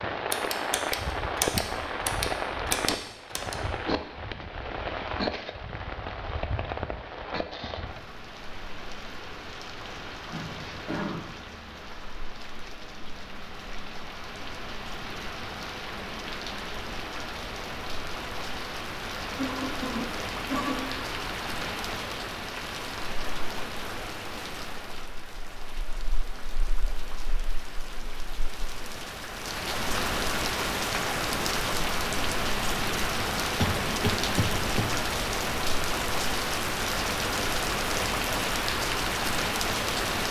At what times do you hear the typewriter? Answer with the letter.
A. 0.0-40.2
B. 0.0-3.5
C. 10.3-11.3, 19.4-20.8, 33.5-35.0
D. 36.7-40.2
B.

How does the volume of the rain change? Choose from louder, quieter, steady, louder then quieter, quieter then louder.
quieter then louder.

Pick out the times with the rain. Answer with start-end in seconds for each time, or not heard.
0.0-40.2.